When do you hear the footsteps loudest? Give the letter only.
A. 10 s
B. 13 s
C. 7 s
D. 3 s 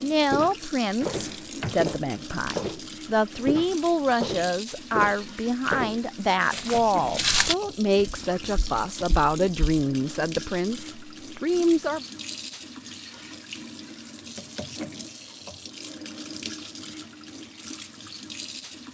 C.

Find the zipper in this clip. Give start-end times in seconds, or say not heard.
not heard.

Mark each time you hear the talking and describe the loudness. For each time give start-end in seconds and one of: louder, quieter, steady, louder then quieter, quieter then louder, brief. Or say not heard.
0.0-12.1 steady.